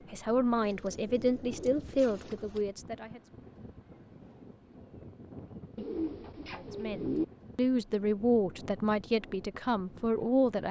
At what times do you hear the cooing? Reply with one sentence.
The cooing can be heard from 0.6 to 2.6 s and from 5.8 to 7.2 s.